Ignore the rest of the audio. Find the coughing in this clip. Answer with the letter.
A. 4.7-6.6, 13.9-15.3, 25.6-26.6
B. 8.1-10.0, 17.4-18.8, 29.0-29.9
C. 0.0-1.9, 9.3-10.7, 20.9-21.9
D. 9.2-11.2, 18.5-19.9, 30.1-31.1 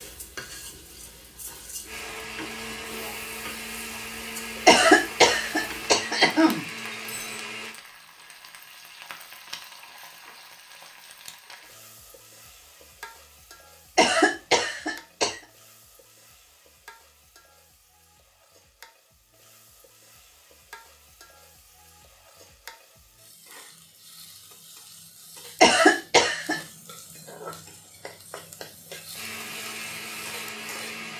A.